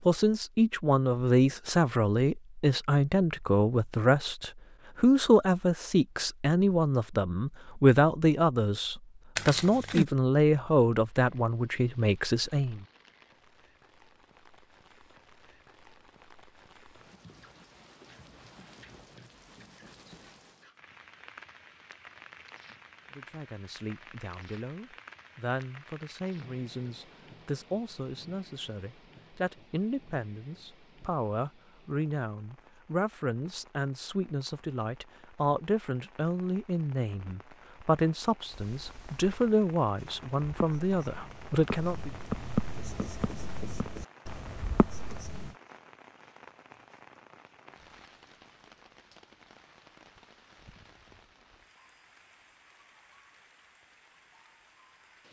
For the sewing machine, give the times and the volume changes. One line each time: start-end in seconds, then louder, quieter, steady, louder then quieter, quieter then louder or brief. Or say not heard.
not heard.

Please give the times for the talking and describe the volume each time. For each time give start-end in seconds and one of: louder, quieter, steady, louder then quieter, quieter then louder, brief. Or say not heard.
0.1-12.8 steady
23.1-42.1 louder.